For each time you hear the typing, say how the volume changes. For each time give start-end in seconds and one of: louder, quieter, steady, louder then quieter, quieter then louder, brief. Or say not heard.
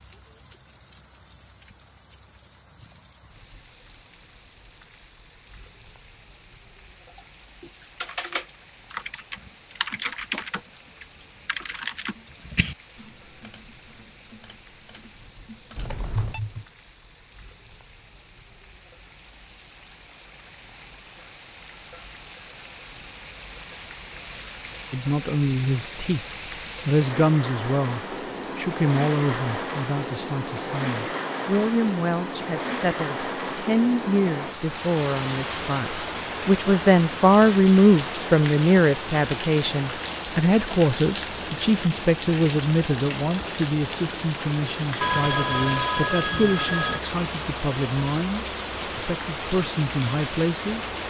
7.0-16.6 quieter then louder.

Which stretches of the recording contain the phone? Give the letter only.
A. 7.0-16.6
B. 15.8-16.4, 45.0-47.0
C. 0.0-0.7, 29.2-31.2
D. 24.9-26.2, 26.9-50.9
B.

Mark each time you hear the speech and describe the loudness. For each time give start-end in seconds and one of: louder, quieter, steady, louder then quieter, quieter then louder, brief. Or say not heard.
24.9-26.2 brief
26.9-50.9 louder then quieter.